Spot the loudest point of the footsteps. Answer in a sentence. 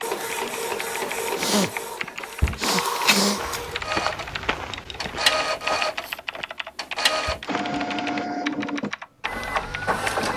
The loudest moment of the footsteps is at 4 seconds.